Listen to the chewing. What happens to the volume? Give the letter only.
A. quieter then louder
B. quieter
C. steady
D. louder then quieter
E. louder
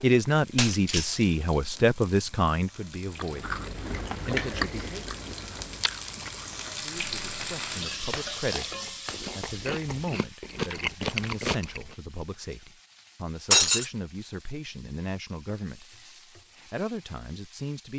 A.